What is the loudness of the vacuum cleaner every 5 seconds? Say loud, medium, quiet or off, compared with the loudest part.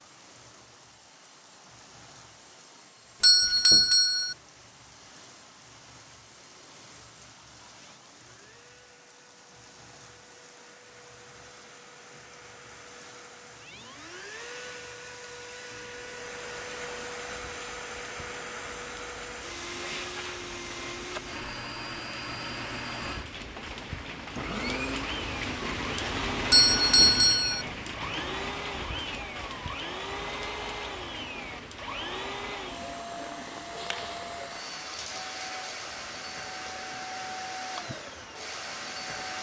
quiet, quiet, medium, loud, loud, loud, loud, loud.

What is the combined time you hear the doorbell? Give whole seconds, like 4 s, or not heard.
2 s.